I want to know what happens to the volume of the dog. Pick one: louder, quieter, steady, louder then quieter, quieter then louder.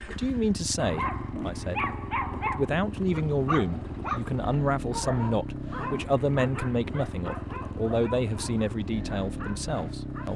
quieter.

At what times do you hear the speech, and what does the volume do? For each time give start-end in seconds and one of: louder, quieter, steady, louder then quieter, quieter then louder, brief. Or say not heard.
0.0-10.3 steady.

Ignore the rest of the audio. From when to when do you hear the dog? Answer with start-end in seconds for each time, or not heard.
0.8-10.3.